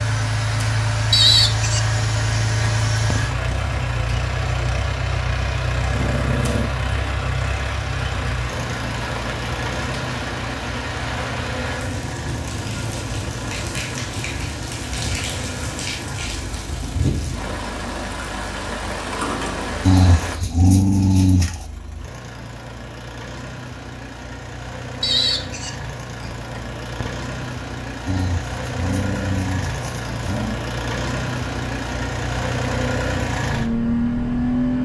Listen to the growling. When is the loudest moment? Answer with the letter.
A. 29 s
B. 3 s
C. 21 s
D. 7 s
C.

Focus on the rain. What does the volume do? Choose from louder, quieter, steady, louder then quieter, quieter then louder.
louder.